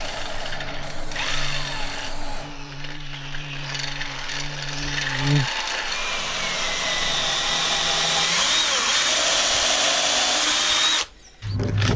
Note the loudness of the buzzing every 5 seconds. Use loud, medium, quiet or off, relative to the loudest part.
medium, loud, off.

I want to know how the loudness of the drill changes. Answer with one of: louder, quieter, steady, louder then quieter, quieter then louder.
louder.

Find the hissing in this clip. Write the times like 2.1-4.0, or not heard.
0.0-2.5.